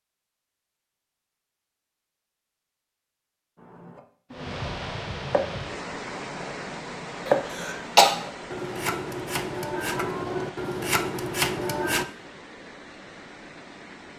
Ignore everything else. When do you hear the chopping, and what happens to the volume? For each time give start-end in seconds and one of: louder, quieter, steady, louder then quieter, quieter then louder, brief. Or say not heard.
3.5-12.1 quieter then louder.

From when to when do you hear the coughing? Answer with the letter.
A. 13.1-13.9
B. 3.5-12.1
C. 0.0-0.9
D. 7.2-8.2
D.